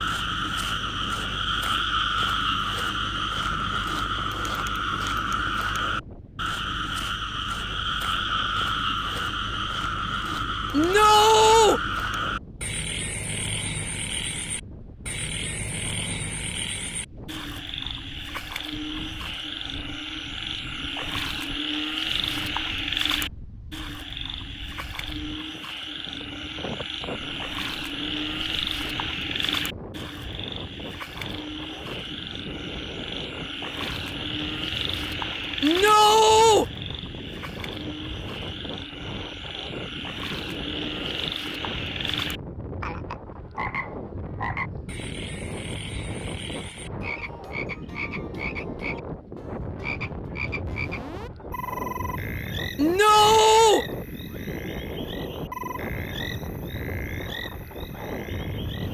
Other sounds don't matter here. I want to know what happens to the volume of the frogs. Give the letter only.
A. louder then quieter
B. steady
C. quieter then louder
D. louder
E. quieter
E.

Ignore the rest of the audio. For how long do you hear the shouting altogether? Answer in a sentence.
You can hear the shouting for 3 seconds altogether.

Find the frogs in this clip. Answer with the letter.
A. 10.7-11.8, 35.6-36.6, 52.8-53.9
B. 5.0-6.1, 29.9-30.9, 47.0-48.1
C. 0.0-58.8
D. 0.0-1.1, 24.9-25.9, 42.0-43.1
C.